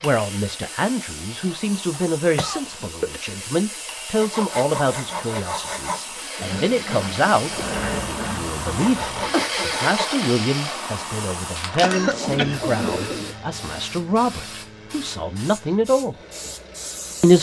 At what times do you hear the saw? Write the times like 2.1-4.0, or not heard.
4.1-10.2.